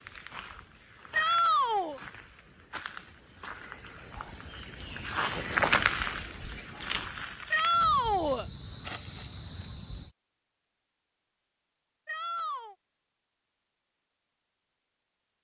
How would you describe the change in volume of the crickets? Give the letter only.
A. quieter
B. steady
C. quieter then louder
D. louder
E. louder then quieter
E.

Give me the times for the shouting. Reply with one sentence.
You can hear the shouting from 1.1 to 2.0 s, from 7.5 to 8.4 s and from 12.1 to 12.8 s.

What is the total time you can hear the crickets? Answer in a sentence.
You can hear the crickets for 10 seconds altogether.